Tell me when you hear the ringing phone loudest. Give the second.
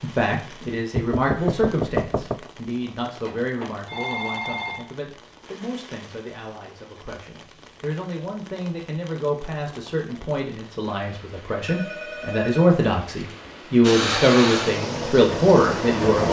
4 s.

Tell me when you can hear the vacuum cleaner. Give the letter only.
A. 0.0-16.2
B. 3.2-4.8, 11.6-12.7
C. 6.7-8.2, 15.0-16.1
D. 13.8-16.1
D.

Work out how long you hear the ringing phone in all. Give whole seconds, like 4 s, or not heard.
3 s.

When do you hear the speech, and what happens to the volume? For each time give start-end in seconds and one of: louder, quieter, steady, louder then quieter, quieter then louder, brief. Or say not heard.
0.0-16.2 quieter then louder.